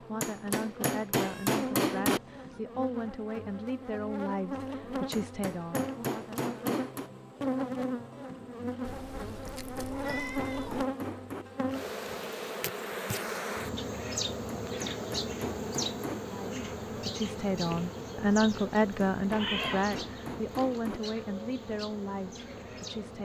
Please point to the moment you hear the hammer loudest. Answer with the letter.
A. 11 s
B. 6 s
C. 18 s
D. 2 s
D.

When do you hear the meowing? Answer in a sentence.
You can hear the meowing from 1.1 to 2.6 s, from 8.8 to 10.8 s and from 19.3 to 19.9 s.